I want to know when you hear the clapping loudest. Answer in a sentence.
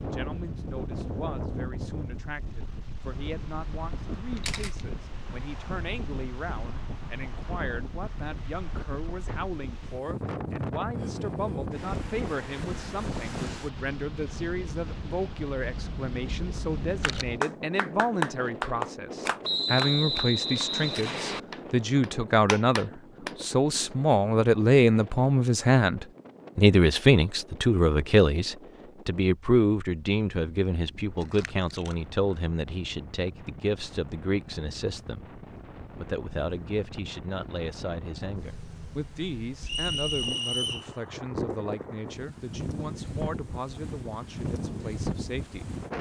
The loudest moment of the clapping is at 18 seconds.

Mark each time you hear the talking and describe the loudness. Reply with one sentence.
The talking can be heard from 0.0 to 45.7 s, getting louder then quieter.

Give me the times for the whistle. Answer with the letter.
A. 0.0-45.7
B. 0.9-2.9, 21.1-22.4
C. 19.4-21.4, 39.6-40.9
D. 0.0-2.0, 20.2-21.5
C.